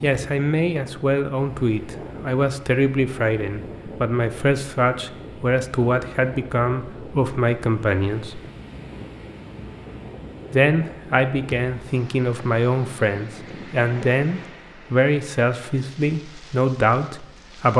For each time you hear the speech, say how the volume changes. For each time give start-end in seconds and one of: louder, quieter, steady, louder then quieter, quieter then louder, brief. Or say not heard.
0.0-8.4 steady
10.5-17.7 steady.